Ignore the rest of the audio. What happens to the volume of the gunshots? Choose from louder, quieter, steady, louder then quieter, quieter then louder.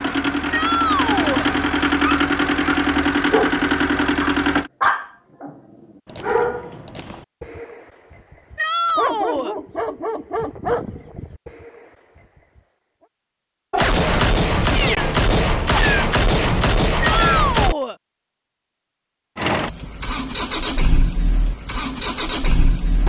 steady.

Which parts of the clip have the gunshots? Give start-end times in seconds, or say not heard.
13.7-17.8.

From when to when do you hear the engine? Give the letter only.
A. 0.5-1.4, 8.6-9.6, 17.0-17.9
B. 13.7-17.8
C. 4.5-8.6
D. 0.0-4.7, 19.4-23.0
D.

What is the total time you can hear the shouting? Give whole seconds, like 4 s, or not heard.
3 s.